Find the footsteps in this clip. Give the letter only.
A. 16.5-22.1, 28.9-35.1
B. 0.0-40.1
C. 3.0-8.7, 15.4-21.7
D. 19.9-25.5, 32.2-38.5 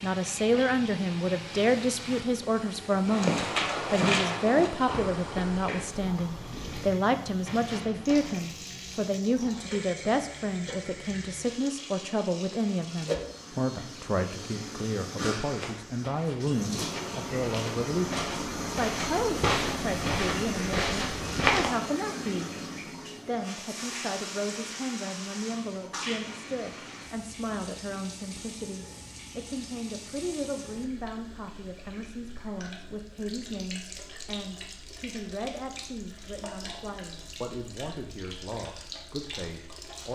C.